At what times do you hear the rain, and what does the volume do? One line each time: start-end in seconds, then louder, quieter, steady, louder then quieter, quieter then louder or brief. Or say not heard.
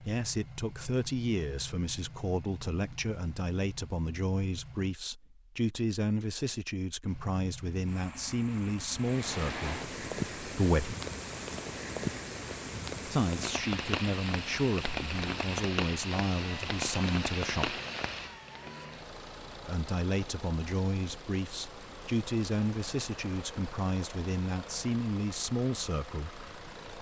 8.9-26.9 quieter.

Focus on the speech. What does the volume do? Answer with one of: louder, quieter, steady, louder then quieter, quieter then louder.
steady.